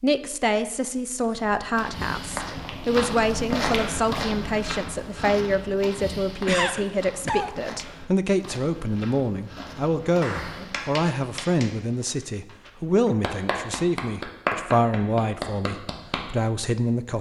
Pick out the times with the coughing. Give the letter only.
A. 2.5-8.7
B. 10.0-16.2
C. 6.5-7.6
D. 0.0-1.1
C.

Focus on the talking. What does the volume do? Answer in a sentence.
The loudness of the talking stays about the same.